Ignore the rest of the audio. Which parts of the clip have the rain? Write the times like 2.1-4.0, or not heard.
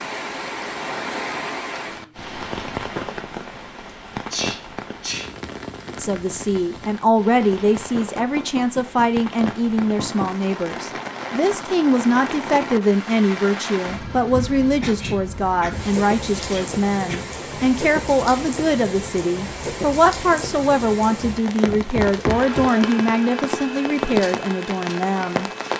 0.0-25.7.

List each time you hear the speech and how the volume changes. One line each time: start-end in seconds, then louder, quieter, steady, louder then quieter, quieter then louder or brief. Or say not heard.
6.0-25.5 steady.